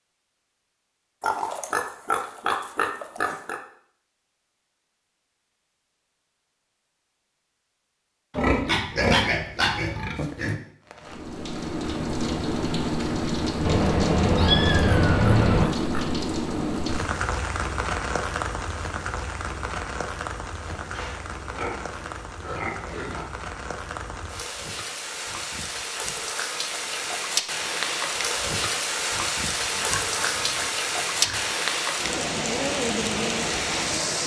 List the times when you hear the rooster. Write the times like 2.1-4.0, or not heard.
not heard.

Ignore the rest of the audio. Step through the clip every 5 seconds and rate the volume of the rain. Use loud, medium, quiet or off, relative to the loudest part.
off, off, loud, loud, medium, loud, loud.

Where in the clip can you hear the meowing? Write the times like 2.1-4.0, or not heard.
13.7-15.7.